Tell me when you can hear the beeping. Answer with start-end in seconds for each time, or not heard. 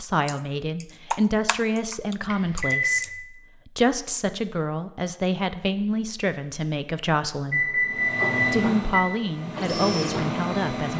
2.2-3.0, 7.5-9.0.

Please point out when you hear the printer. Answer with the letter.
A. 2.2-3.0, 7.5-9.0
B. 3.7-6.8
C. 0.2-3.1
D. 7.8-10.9
D.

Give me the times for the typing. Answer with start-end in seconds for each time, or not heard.
0.2-3.1.